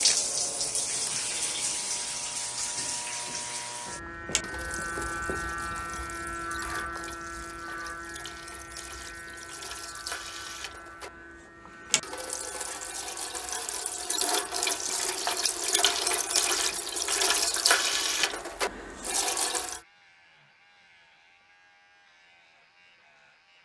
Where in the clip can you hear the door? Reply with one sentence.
You can't hear the door here.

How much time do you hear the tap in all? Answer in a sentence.
You can hear the tap for 20 seconds altogether.